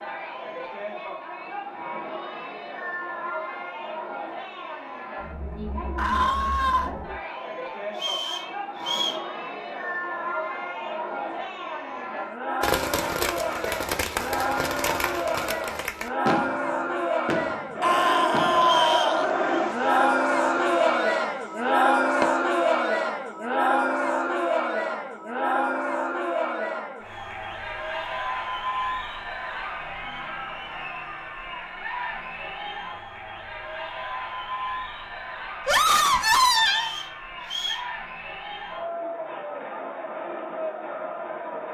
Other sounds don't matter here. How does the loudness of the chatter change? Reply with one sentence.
The volume of the chatter goes up, then down.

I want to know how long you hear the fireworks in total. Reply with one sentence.
You can hear the fireworks for 10 seconds altogether.